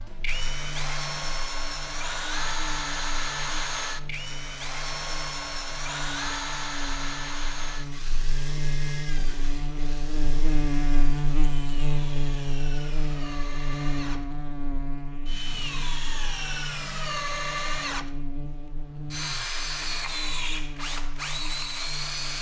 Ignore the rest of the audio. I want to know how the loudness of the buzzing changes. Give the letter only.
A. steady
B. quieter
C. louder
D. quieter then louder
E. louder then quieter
E.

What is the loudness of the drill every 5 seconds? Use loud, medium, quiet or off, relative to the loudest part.
loud, loud, medium, loud, loud.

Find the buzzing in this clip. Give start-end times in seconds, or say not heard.
0.0-22.3.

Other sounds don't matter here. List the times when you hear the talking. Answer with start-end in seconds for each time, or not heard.
not heard.